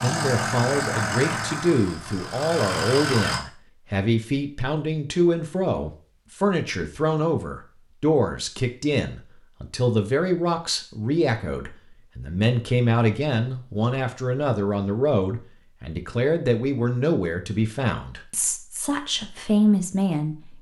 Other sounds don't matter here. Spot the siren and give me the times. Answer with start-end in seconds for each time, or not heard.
not heard.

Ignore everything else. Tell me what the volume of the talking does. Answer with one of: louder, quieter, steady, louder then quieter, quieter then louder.
steady.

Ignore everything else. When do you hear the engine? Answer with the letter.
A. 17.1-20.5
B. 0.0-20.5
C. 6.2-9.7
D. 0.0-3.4
D.